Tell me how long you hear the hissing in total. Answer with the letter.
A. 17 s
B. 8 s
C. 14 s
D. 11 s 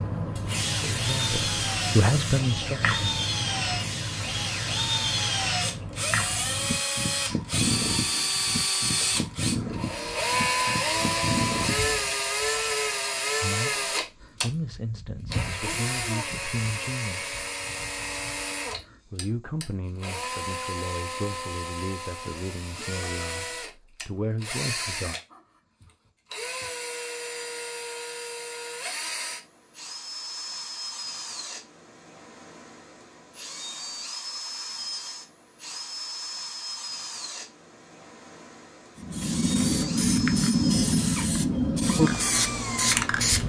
A.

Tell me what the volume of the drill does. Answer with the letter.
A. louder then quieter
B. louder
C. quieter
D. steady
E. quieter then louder
C.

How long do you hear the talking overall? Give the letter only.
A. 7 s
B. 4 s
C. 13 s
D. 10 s
C.